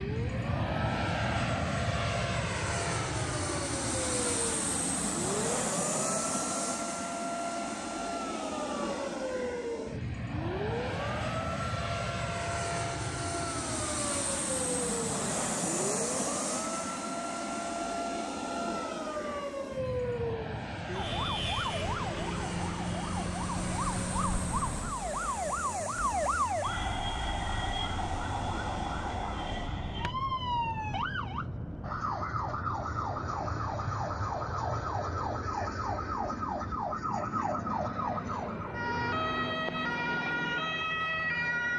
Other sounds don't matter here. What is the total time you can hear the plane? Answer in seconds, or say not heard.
42 s.